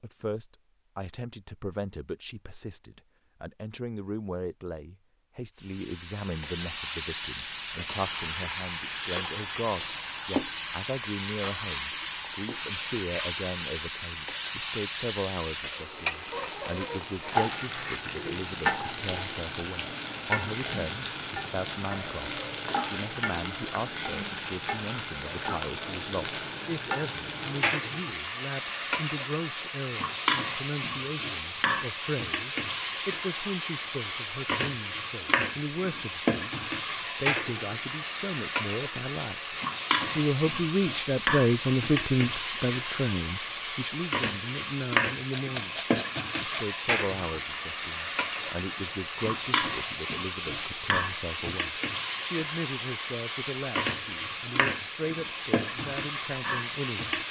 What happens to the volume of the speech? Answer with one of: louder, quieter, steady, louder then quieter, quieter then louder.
louder then quieter.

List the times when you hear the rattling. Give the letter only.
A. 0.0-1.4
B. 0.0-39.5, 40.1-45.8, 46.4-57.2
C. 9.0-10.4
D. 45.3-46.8
D.